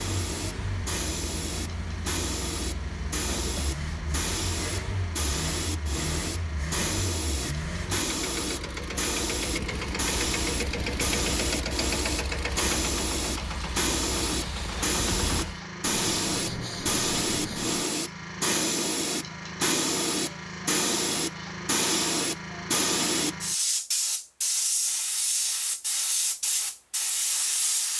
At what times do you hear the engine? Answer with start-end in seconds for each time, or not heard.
0.0-15.6.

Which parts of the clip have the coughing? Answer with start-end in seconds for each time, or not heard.
3.2-3.8.